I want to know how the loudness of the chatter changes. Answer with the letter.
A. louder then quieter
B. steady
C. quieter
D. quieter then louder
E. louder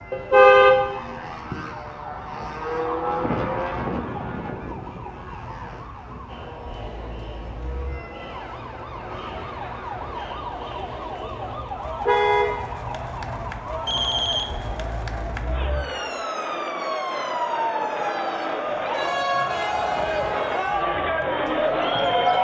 E.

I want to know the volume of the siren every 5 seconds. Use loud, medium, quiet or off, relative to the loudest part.
quiet, quiet, medium, loud, loud.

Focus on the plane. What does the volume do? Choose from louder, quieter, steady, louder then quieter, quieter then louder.
louder then quieter.